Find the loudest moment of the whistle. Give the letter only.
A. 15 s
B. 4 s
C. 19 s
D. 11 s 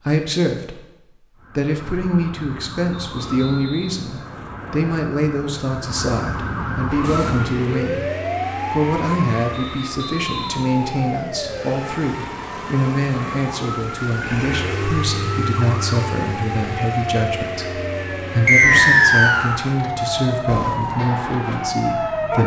C.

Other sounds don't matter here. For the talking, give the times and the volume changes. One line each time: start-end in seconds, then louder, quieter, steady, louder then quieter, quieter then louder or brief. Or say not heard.
0.0-22.4 steady.